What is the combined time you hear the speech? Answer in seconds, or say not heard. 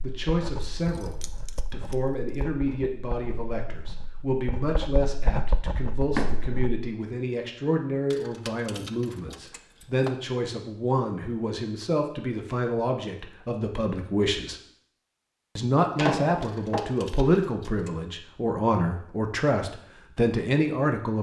20 s.